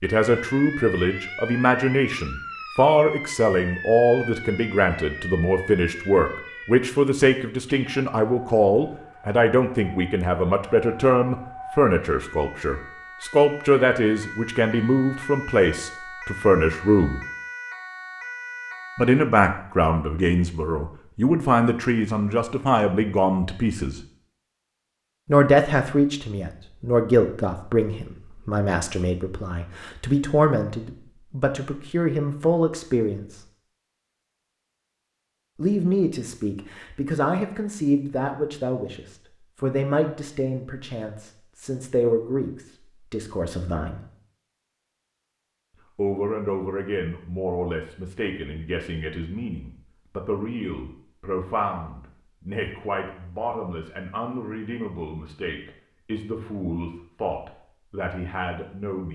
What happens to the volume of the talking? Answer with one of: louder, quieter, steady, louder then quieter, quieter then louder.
quieter.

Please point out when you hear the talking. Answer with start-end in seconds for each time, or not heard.
0.0-17.2, 18.9-24.1, 25.2-33.5, 35.5-44.0, 46.0-59.1.